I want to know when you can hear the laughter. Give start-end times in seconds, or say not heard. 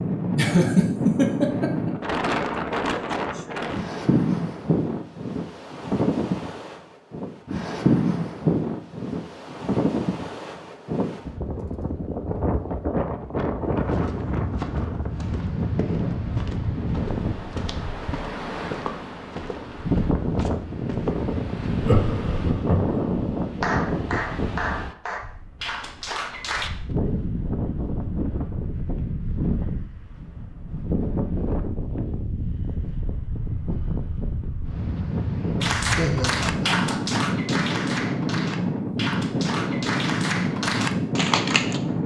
0.3-1.9, 21.8-23.1, 36.0-37.2.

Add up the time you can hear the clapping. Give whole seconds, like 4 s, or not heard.
9 s.